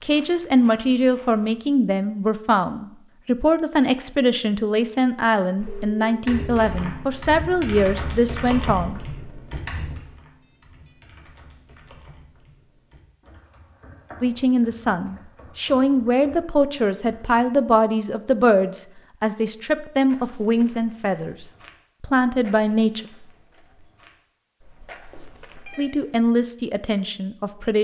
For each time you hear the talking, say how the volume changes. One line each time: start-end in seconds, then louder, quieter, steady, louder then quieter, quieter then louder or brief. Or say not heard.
0.0-9.0 steady
14.2-23.1 steady
25.8-27.8 brief.